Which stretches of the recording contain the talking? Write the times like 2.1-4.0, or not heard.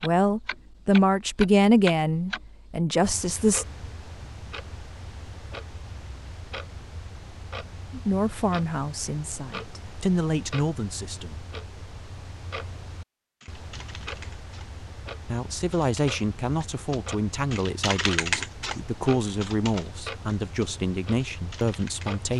0.0-3.6, 7.9-11.6, 15.2-22.3.